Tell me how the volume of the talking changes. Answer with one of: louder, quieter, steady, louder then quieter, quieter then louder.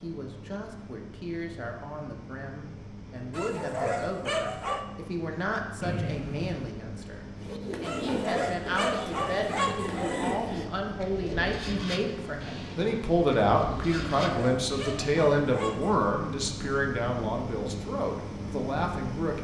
louder.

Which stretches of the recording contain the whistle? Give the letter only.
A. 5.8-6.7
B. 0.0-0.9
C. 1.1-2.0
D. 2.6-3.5
A.